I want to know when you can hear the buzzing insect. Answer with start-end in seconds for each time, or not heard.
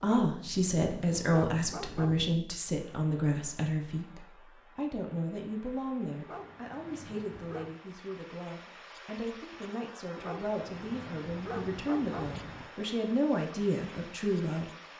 not heard.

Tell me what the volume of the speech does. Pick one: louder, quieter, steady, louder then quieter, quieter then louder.
quieter then louder.